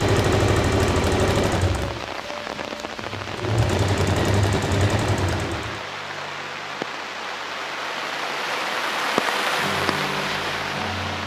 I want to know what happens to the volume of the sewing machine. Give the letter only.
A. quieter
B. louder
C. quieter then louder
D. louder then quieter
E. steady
C.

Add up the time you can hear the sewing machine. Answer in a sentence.
You can hear the sewing machine for 6 seconds altogether.